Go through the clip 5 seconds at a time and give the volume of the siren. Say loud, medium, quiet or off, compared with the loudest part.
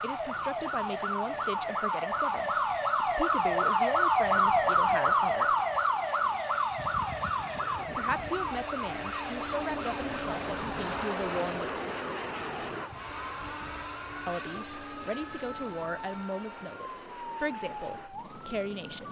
loud, loud, quiet, quiet.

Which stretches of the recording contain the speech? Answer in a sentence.
The speech can be heard from 0.0 to 5.5 s, from 8.0 to 11.8 s and from 14.2 to 19.0 s.